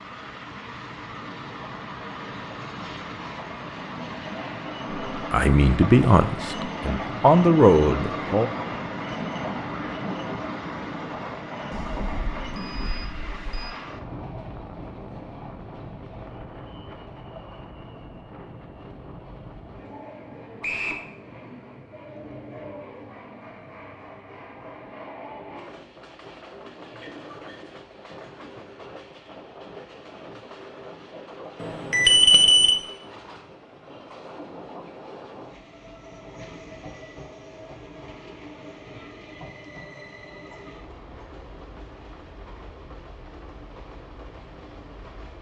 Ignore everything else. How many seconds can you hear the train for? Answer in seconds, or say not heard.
45 s.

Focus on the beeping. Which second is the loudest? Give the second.
32 s.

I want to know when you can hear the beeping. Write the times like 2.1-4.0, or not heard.
11.7-13.7, 31.6-32.8.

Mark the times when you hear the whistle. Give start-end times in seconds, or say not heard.
20.6-21.1.